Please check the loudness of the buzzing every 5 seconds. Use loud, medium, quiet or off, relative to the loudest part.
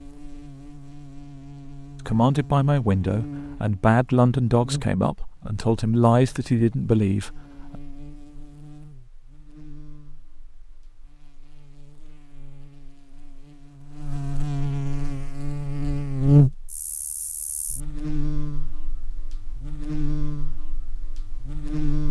quiet, quiet, medium, loud, medium.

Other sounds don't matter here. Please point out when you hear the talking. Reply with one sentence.
You can hear the talking from 2.0 to 7.8 s.